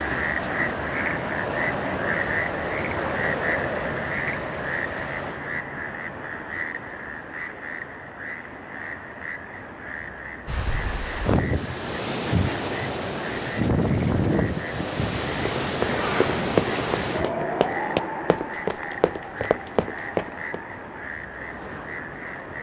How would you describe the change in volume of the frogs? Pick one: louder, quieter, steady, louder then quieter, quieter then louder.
quieter.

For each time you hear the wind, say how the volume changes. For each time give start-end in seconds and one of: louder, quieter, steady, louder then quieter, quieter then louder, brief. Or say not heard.
10.4-22.5 quieter.